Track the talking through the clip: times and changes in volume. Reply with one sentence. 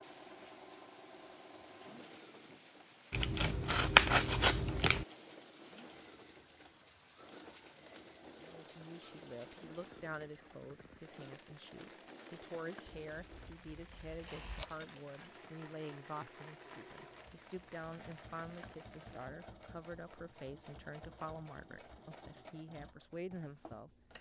You can hear the talking from 8.4 to 23.9 s, at a steady volume.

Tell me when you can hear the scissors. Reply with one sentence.
The scissors can be heard from 3.1 to 5.0 s and from 12.8 to 14.8 s.